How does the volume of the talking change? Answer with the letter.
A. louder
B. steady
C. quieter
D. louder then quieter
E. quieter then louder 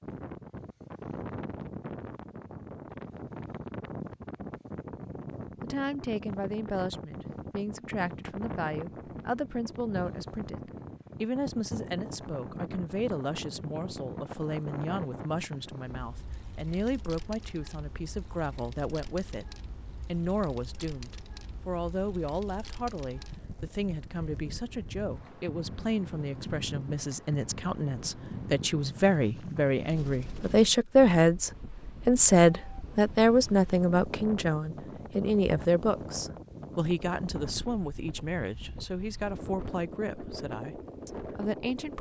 D.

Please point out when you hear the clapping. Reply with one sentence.
You can't hear the clapping here.